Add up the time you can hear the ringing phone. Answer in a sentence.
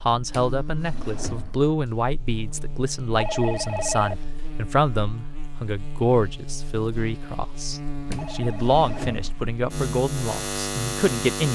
You can hear the ringing phone for 2 seconds altogether.